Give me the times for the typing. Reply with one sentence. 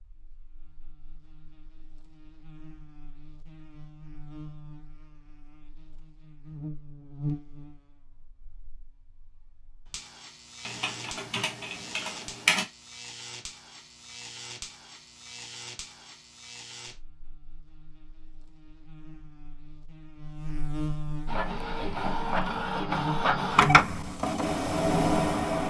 The typing can be heard from 10.7 to 12.7 s.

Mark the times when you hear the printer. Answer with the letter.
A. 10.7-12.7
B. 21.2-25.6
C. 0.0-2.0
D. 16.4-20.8
B.